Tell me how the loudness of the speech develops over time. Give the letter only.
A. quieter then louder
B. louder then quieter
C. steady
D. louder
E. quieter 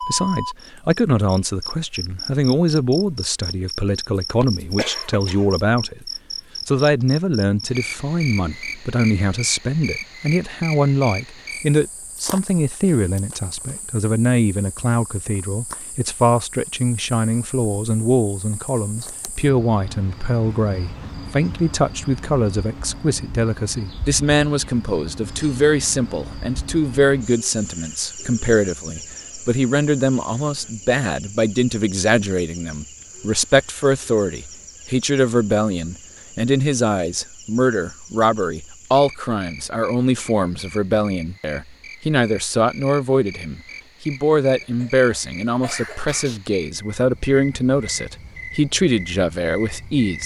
C.